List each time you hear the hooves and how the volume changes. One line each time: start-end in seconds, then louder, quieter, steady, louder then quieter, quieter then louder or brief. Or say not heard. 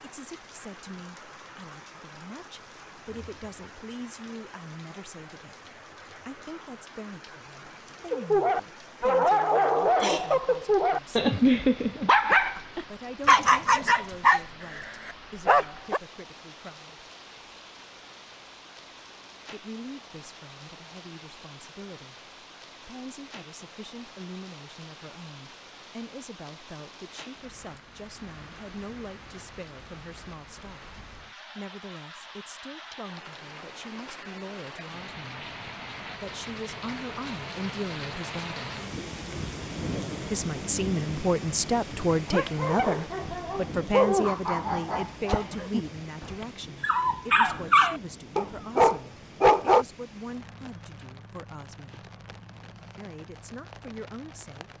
not heard.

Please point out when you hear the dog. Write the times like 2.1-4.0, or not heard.
8.1-16.0, 42.2-49.9.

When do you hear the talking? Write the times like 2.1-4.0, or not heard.
0.0-11.2, 12.6-17.1, 19.5-38.7, 40.3-52.1, 53.0-54.7.